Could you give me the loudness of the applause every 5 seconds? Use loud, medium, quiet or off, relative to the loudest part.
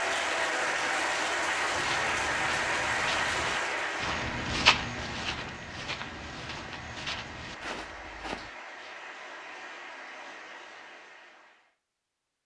loud, quiet, quiet.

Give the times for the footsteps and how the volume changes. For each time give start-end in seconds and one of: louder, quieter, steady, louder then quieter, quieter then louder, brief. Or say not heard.
1.7-8.5 louder then quieter.